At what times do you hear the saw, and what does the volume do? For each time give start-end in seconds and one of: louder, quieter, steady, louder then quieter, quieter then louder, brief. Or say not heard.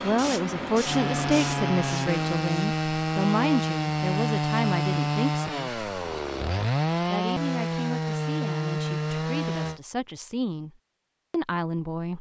0.8-9.8 steady.